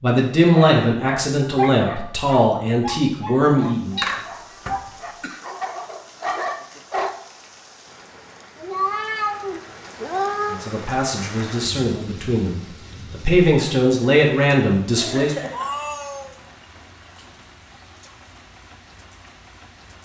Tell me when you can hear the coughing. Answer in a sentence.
You can hear the coughing from 4.0 to 5.5 s and from 14.9 to 15.8 s.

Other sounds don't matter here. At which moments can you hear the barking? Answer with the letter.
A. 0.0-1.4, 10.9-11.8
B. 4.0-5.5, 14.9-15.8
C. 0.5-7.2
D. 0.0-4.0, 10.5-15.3
C.